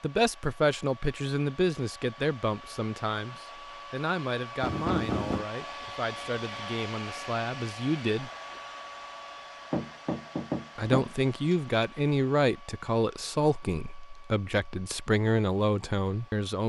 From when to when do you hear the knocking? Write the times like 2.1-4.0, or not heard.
4.6-5.5, 9.7-11.6.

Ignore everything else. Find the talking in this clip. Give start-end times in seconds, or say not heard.
0.0-8.3, 10.8-16.6.